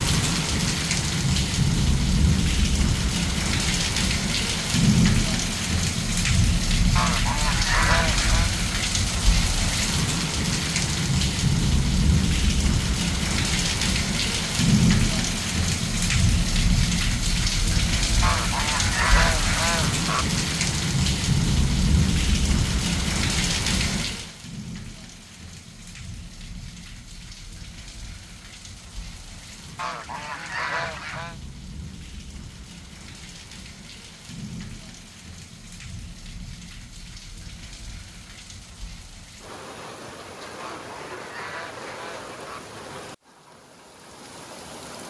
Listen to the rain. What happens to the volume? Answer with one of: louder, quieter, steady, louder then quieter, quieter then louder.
quieter.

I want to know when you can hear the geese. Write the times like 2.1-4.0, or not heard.
7.0-8.5, 18.2-20.2, 29.8-31.4, 40.5-42.6.